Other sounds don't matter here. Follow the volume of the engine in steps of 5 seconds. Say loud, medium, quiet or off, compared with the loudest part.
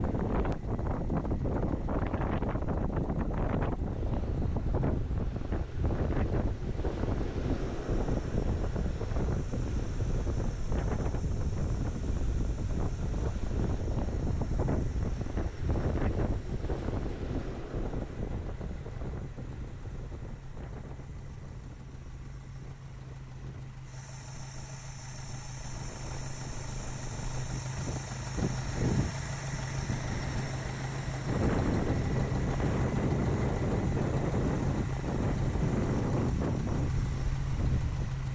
quiet, quiet, quiet, quiet, medium, loud, loud, loud.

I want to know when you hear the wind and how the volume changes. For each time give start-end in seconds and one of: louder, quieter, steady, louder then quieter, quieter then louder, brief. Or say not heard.
0.0-38.3 quieter then louder.